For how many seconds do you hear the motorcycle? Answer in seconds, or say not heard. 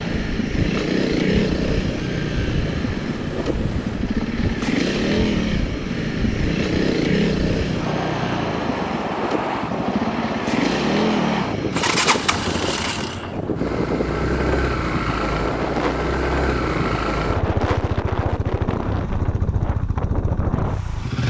21 s.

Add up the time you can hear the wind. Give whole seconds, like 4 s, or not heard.
21 s.